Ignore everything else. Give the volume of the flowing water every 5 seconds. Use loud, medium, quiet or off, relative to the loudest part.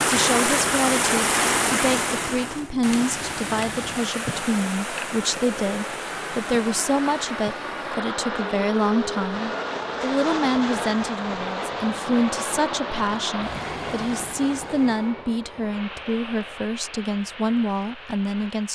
loud, medium, medium, off.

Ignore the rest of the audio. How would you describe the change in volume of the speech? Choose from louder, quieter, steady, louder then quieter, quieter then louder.
steady.